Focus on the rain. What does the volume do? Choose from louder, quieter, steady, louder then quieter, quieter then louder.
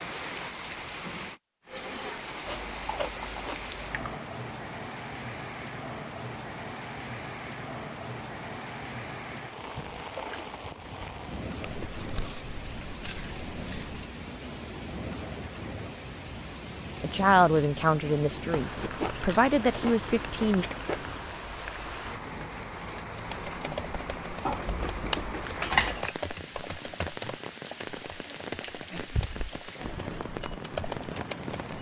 steady.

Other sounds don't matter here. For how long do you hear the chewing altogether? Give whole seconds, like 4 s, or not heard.
8 s.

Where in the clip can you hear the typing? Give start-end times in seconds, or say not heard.
23.1-31.7.